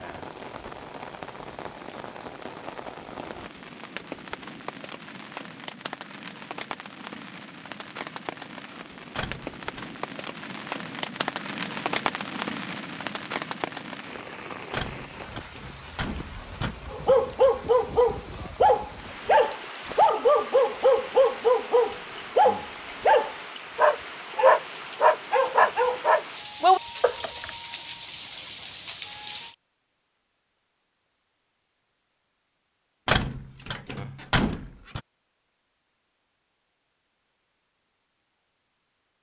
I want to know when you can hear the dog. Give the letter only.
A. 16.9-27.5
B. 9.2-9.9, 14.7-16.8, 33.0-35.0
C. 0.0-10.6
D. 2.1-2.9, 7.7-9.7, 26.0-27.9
A.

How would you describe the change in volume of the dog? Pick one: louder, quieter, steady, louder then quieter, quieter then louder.
steady.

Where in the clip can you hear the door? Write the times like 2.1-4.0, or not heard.
9.2-9.9, 14.7-16.8, 33.0-35.0.